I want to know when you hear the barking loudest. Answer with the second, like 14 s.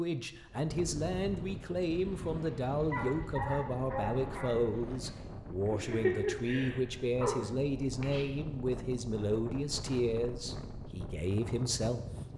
6 s.